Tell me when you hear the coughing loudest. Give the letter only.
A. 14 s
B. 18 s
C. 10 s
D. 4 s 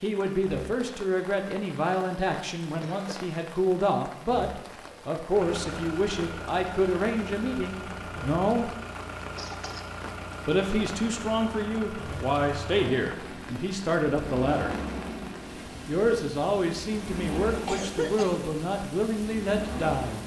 B.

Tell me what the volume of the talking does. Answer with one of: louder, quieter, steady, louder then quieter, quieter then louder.
steady.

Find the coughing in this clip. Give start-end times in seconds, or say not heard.
2.6-3.1, 9.3-9.9, 17.5-18.4.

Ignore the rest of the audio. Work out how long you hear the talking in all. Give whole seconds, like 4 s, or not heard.
17 s.